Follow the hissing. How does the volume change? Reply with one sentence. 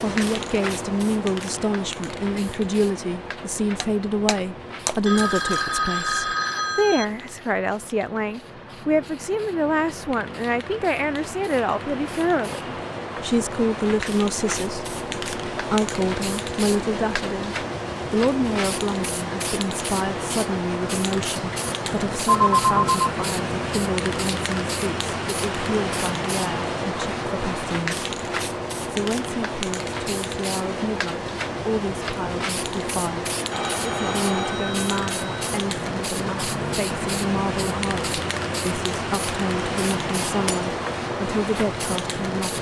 The loudness of the hissing goes up.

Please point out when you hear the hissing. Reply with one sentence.
The hissing can be heard from 0.0 to 42.5 s.